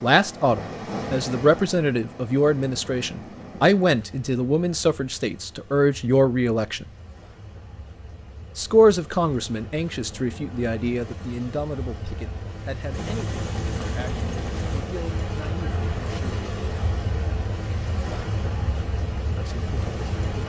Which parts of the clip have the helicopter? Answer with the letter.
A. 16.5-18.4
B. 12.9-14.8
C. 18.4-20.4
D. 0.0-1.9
B.